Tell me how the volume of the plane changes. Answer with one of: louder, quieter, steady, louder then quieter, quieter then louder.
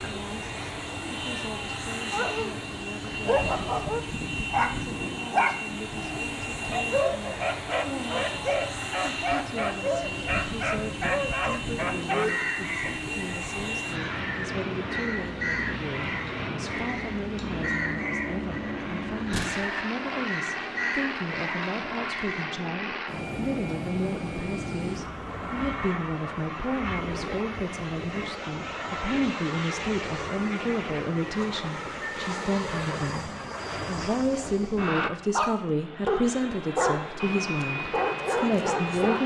steady.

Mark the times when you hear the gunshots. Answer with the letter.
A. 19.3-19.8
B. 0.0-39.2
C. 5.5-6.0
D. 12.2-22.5
A.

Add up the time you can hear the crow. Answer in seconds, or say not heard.
10 s.